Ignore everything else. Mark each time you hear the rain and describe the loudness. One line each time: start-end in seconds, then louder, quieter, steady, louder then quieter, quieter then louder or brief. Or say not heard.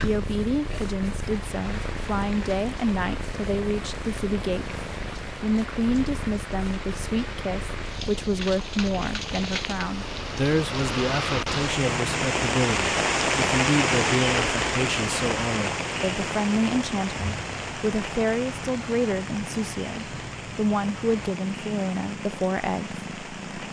0.0-23.6 louder then quieter.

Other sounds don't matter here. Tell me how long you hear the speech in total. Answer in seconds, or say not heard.
23 s.